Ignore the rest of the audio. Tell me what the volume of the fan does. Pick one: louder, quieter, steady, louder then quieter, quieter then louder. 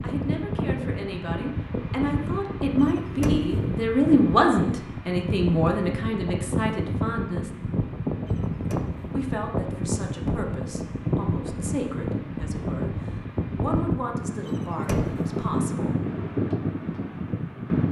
steady.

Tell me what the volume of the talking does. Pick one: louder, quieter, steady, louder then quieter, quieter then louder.
louder then quieter.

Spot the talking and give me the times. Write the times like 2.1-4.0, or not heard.
0.0-7.5, 9.1-15.9.